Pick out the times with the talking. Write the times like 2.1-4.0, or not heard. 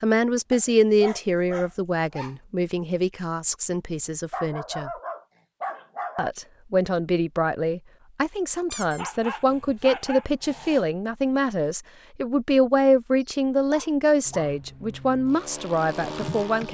0.0-4.9, 6.2-16.6.